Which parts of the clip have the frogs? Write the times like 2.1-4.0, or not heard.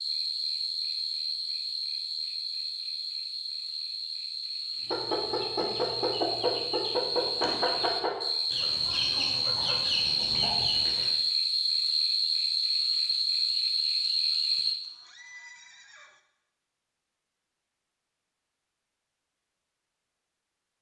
0.0-14.8.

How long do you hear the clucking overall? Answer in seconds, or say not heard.
6 s.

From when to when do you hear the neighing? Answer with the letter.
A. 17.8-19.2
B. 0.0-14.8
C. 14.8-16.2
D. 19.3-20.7
C.